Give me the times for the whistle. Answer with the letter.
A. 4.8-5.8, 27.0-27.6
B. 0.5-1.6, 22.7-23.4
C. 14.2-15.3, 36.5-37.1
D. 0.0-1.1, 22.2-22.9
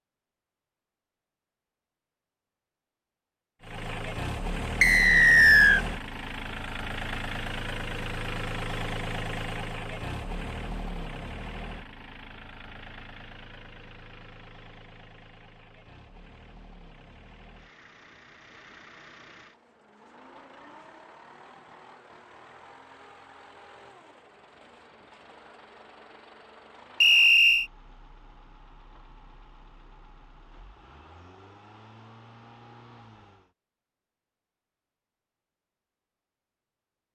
A.